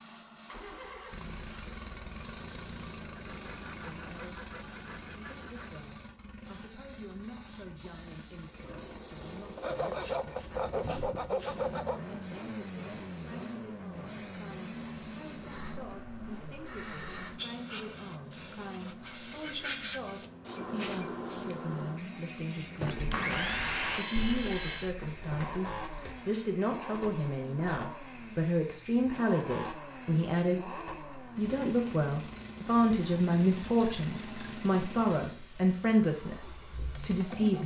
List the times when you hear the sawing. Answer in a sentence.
The sawing can be heard from 3.1 to 5.8 s, from 9.6 to 12.0 s, from 22.8 to 24.9 s and from 33.0 to 34.6 s.